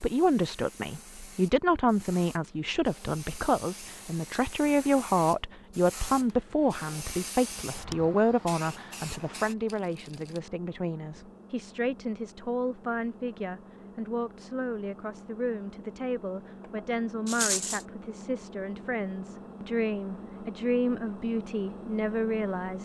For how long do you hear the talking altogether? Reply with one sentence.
The talking can be heard for 23 seconds in total.